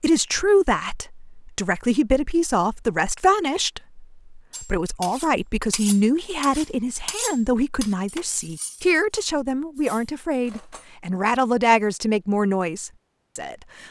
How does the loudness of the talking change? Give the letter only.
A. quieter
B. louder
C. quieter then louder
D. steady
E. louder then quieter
D.